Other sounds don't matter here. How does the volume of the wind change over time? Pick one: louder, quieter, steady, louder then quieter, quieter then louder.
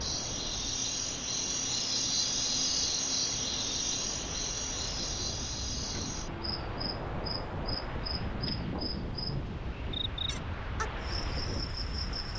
louder.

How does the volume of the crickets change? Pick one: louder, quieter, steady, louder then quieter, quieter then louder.
quieter.